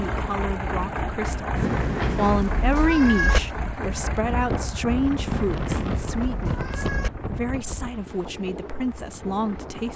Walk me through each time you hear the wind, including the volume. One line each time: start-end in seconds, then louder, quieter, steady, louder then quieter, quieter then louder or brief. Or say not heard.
4.3-9.9 quieter.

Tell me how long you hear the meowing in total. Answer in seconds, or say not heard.
4 s.